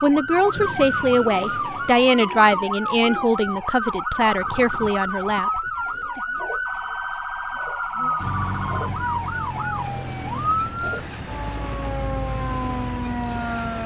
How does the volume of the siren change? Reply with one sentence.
The loudness of the siren stays about the same.